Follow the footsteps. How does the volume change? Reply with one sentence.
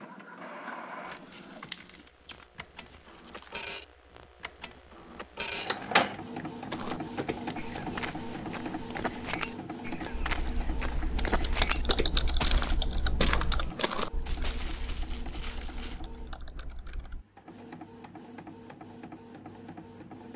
The loudness of the footsteps goes up.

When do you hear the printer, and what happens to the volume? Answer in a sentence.
The printer can be heard from 0.0 to 20.3 s, getting louder then quieter.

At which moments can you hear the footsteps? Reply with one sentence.
You can hear the footsteps from 6.7 to 14.1 s.